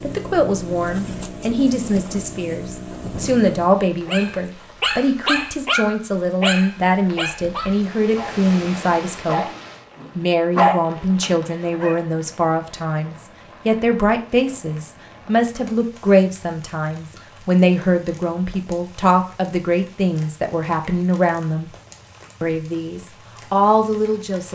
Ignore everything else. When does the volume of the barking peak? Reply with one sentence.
The loudest moment of the barking is at 11 seconds.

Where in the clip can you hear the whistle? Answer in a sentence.
The whistle can't be heard in this clip.